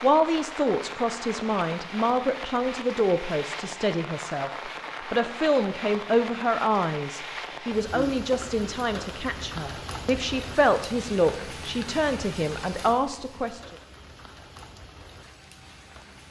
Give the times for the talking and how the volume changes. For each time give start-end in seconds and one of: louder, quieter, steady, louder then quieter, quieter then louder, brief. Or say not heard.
0.0-13.6 steady.